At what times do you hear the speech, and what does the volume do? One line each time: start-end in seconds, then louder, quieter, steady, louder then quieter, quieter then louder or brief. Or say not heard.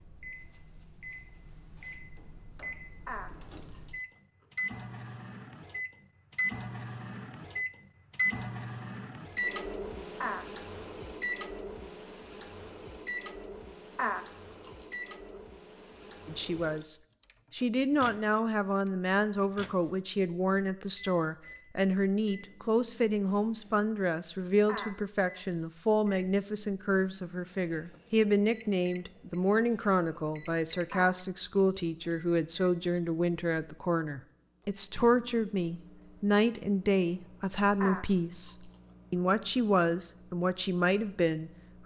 16.2-41.8 steady.